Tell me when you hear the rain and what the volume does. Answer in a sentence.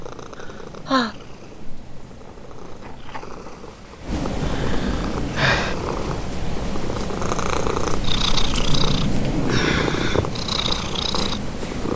You can hear the rain from 0.0 to 11.9 s, getting louder.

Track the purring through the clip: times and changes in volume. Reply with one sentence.
The purring can be heard from 0.0 to 11.9 s, getting louder.